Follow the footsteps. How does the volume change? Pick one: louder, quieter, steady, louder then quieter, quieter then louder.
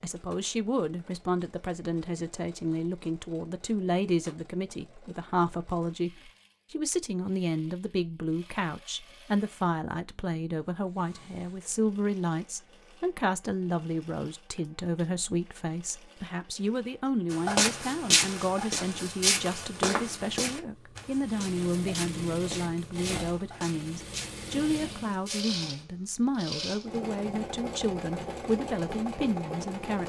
quieter.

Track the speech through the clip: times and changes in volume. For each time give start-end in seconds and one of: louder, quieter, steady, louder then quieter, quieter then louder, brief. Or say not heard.
0.0-30.0 steady.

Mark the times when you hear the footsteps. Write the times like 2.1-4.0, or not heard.
17.3-25.6.